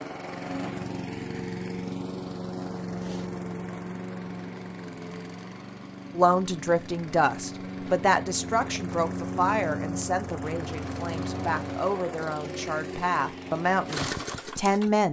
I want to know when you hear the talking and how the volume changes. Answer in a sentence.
The talking can be heard from 6.2 to 15.0 s, getting quieter then louder.